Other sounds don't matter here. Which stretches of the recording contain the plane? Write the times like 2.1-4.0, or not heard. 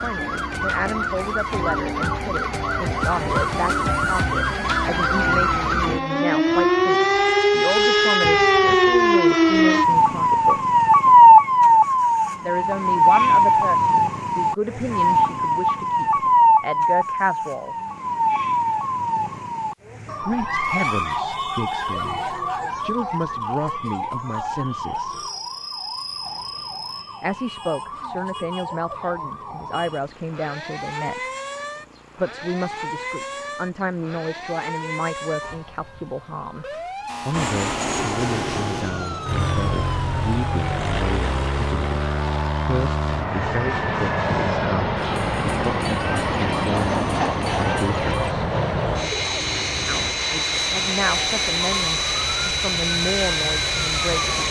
37.3-54.4.